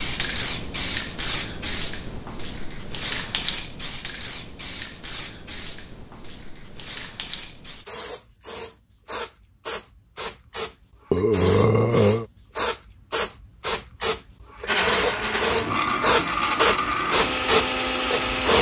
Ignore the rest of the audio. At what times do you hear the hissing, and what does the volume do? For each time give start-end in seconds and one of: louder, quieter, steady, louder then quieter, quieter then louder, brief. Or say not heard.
0.0-18.5 quieter then louder.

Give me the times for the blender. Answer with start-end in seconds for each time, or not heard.
14.7-18.5.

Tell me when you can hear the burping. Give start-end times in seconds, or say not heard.
11.1-12.2.